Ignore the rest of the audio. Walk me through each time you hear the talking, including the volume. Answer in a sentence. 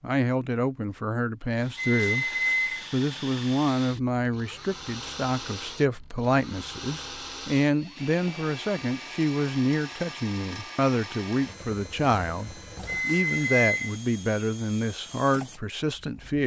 You can hear the talking briefly from 0.0 to 2.3 s; and from 2.9 to 16.4 s, at a steady volume.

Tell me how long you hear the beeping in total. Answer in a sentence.
You can hear the beeping for 2 seconds altogether.